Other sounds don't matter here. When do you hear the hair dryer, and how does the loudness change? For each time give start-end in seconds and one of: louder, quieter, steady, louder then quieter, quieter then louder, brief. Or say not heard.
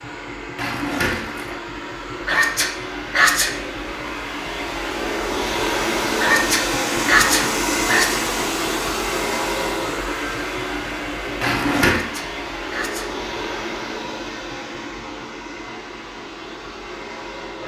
0.0-17.6 louder then quieter.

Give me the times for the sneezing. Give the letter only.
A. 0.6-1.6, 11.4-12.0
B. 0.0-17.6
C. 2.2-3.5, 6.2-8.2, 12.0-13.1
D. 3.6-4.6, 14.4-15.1
C.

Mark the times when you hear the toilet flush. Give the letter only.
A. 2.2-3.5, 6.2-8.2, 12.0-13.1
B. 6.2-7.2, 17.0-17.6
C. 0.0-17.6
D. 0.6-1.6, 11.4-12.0
D.